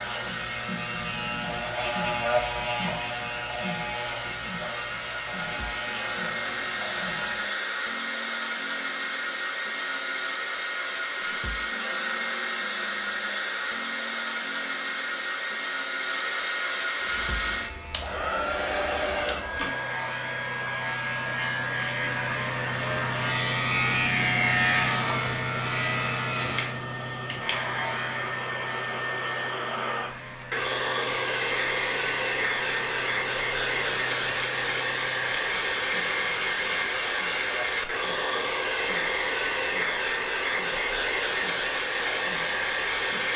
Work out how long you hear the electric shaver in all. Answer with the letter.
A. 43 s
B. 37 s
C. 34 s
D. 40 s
C.